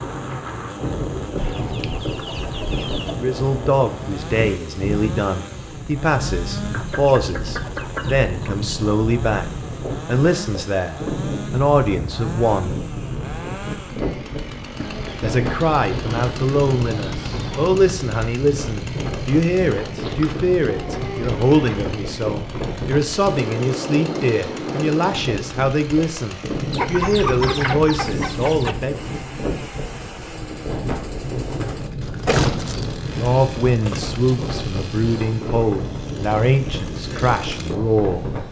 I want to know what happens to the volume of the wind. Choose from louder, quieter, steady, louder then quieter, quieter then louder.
steady.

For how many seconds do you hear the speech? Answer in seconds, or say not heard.
28 s.